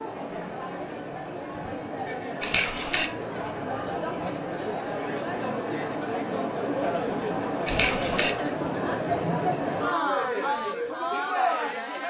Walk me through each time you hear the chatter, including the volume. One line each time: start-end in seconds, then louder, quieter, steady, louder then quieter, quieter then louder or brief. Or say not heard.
0.0-12.0 louder.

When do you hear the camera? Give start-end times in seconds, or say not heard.
2.4-3.1, 7.7-8.3.